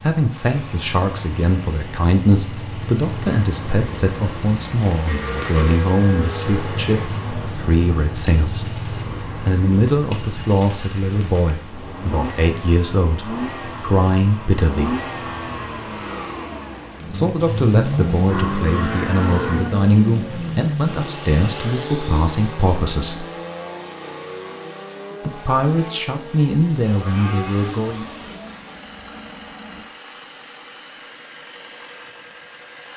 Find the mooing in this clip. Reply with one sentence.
You can hear the mooing from 5.0 to 7.1 s, from 18.1 to 19.8 s and from 26.8 to 28.4 s.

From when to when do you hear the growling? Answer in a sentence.
The growling can be heard from 28.1 to 29.9 s.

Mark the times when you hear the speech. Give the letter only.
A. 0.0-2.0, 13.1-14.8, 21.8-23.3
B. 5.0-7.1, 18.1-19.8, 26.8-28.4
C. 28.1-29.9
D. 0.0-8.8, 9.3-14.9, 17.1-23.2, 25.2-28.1
D.